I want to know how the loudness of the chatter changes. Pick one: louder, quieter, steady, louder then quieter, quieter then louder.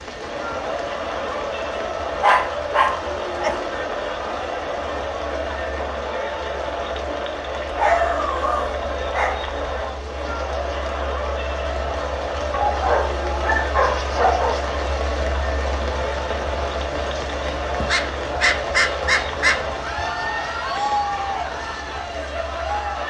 steady.